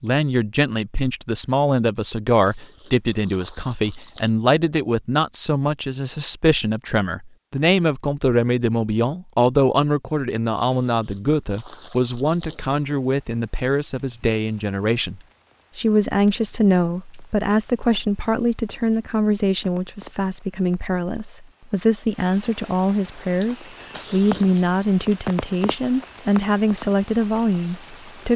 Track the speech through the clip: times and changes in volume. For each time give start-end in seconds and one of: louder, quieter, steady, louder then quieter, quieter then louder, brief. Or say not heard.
0.0-28.3 steady.